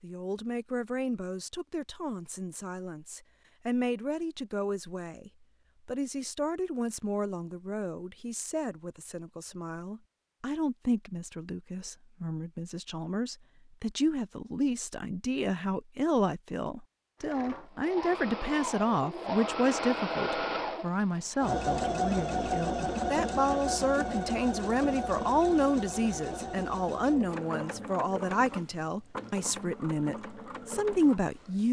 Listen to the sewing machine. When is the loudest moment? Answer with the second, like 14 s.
22 s.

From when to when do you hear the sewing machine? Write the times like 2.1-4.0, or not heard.
17.2-31.6.